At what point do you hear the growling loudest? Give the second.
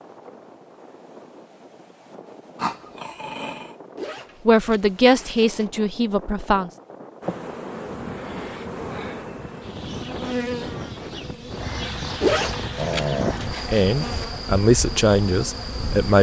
13 s.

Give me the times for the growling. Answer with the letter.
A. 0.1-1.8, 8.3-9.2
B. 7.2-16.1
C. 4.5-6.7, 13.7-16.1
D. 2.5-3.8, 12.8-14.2
D.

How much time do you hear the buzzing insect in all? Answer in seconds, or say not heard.
9 s.